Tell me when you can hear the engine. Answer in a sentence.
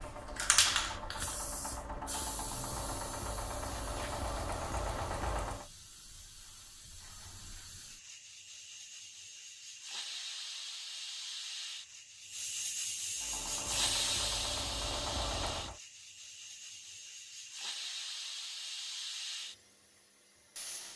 The engine can be heard from 0.0 to 5.7 s and from 13.2 to 15.8 s.